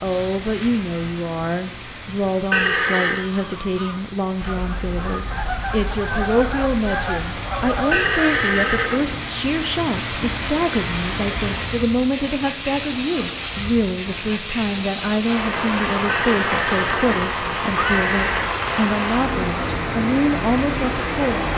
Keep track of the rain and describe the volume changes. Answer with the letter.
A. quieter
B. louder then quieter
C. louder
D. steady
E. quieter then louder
C.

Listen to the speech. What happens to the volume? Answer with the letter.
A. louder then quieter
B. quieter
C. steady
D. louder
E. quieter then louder
C.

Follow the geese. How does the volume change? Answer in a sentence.
The loudness of the geese goes up.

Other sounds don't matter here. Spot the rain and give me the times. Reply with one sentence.
The rain can be heard from 0.0 to 21.5 s.